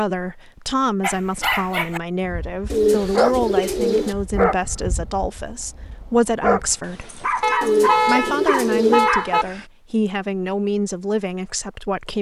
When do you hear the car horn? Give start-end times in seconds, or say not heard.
7.4-9.4.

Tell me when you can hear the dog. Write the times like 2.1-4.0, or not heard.
1.0-9.7.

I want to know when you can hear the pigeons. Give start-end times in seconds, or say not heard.
2.7-4.2, 7.6-9.1.